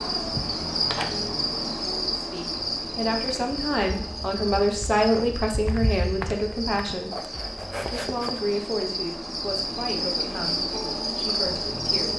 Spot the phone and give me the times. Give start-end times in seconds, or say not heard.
not heard.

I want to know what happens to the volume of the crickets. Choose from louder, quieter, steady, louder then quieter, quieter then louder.
quieter then louder.